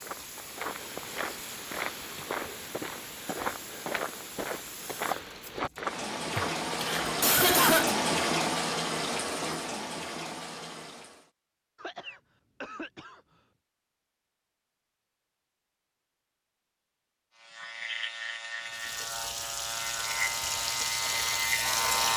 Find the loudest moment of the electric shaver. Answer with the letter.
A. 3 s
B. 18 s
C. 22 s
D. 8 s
C.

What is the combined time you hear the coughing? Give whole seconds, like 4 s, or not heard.
3 s.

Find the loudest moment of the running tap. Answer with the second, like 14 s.
8 s.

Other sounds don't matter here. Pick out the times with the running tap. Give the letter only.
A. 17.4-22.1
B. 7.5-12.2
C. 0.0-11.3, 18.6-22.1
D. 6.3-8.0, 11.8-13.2
C.